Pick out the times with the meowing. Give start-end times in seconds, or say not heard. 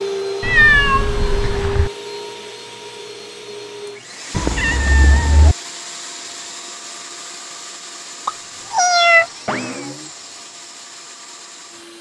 0.4-1.9, 4.3-5.5, 8.2-9.9.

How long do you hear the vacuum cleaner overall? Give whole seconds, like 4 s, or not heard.
12 s.